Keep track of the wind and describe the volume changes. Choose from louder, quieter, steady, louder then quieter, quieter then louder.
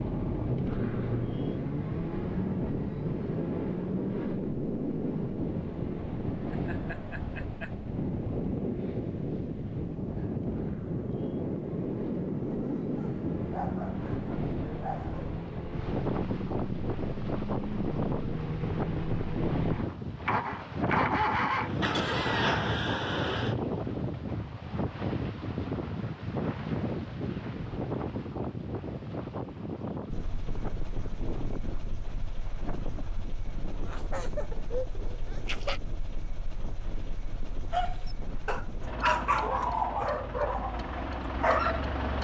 quieter.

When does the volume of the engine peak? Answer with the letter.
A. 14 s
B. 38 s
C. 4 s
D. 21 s
D.